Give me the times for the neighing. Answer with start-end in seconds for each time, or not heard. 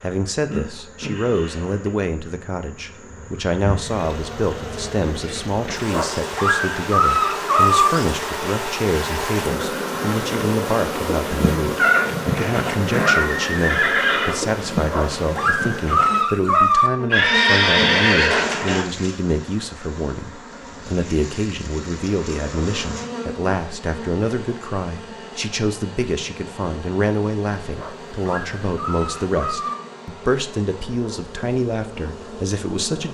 11.8-14.3, 17.1-18.9.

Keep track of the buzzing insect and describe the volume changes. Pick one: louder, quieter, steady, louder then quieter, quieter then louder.
louder then quieter.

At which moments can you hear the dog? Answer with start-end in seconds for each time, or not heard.
5.9-7.9, 14.8-16.9, 27.8-29.8.